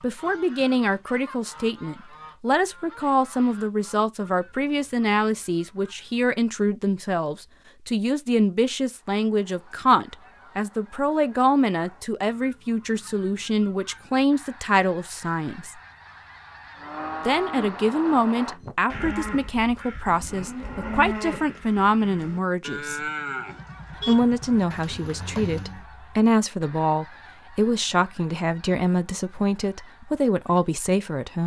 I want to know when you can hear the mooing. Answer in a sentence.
You can hear the mooing from 16.8 to 25.9 s.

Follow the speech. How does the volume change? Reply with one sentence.
The volume of the speech stays about the same.